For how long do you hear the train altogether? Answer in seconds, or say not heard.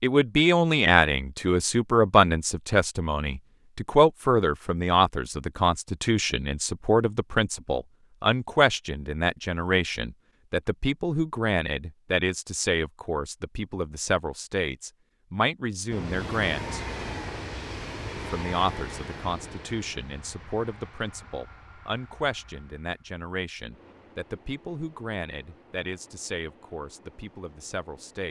12 s.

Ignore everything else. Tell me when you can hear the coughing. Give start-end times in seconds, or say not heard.
not heard.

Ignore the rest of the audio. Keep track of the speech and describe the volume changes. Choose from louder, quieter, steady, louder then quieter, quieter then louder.
quieter.